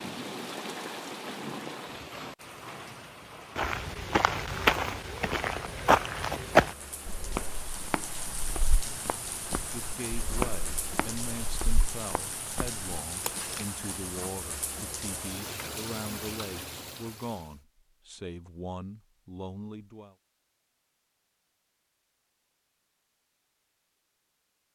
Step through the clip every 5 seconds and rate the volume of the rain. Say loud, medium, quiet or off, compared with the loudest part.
loud, loud, loud, loud, off.